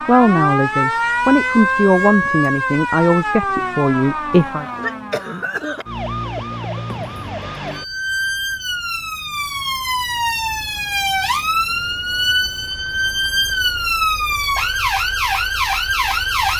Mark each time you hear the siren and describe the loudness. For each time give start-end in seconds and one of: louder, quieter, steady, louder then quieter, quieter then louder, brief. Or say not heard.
0.0-16.5 quieter then louder.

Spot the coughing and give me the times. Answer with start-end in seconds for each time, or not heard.
4.5-5.8.